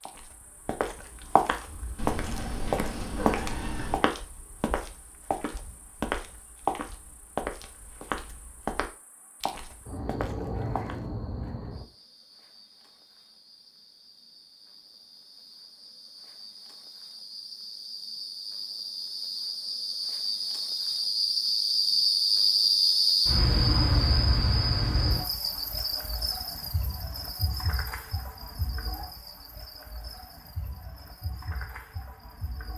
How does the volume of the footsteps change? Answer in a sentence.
The volume of the footsteps goes down.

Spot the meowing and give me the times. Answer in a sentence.
You can hear the meowing from 1.9 to 4.0 s.